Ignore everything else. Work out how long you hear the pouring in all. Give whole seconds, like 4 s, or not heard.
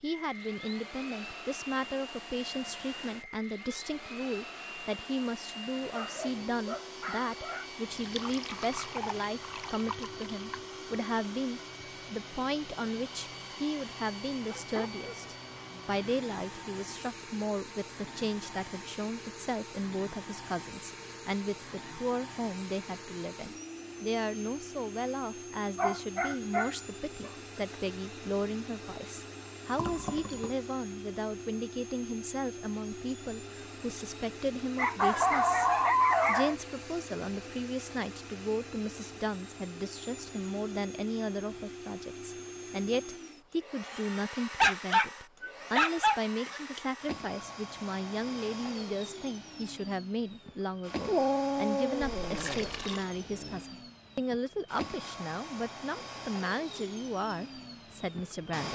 4 s.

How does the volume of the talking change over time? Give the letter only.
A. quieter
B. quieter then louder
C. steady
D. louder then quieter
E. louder
C.